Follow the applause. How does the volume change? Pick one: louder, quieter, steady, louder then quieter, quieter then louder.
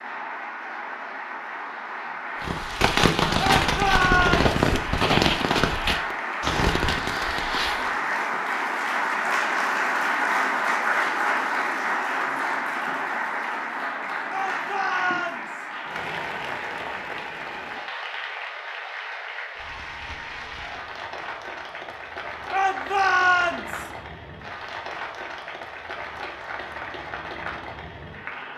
louder then quieter.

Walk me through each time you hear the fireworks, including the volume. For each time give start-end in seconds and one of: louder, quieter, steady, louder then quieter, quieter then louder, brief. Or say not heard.
2.4-8.0 quieter.